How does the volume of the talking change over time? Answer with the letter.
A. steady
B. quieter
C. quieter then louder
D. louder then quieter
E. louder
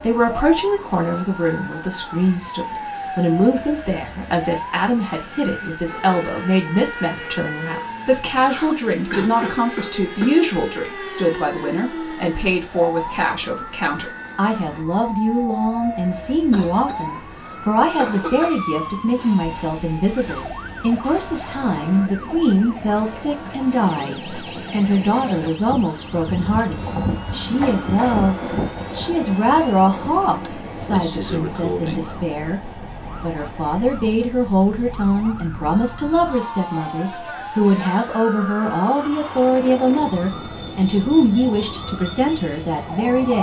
A.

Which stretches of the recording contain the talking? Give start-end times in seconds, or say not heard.
0.0-43.3.